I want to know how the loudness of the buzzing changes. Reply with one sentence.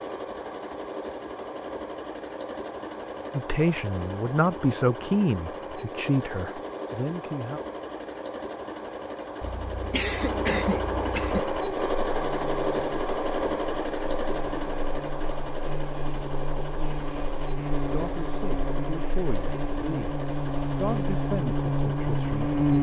The volume of the buzzing goes up.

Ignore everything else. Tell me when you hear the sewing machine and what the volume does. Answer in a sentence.
The sewing machine can be heard from 0.0 to 22.7 s, getting louder then quieter.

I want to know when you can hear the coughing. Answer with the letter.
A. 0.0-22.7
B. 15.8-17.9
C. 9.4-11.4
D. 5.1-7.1
C.